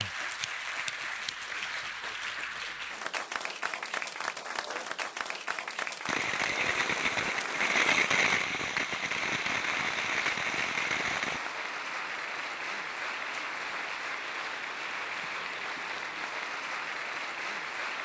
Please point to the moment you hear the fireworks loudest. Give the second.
8 s.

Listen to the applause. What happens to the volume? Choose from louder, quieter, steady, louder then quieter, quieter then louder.
steady.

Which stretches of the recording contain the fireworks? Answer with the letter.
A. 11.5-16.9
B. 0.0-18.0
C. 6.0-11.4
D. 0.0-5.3
C.